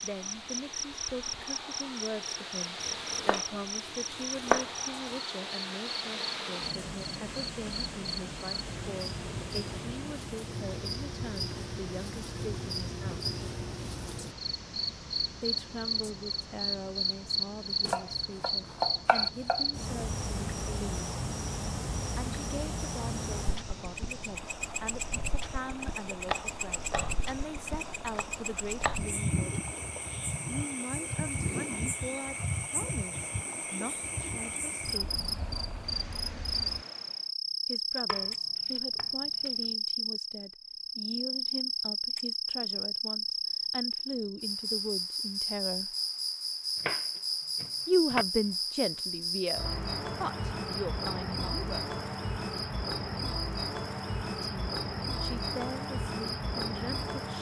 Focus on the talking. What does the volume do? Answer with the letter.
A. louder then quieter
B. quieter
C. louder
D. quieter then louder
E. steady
C.